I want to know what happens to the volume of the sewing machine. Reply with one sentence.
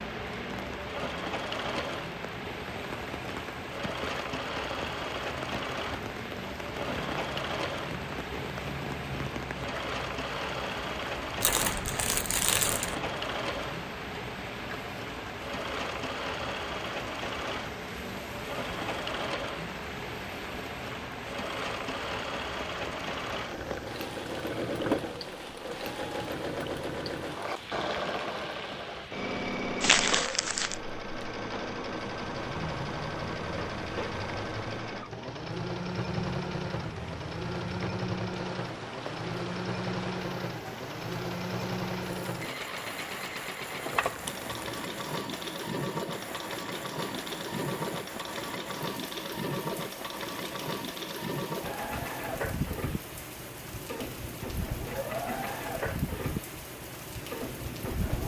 The volume of the sewing machine stays about the same.